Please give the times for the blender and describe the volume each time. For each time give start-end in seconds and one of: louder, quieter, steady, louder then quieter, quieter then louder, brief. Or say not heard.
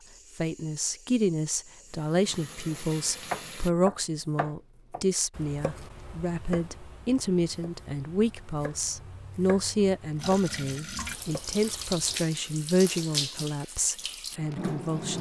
not heard.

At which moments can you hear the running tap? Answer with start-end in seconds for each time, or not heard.
0.0-3.7, 10.2-15.1.